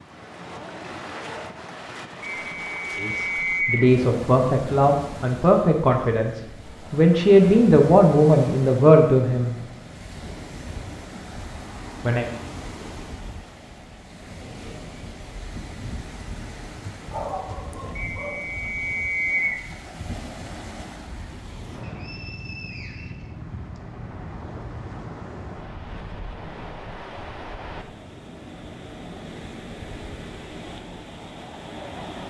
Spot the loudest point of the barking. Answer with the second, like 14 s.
17 s.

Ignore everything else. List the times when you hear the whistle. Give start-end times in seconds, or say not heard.
2.2-3.9, 17.9-19.6, 21.8-23.8.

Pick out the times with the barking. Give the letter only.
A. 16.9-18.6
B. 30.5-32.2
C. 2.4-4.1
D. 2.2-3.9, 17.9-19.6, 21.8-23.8
A.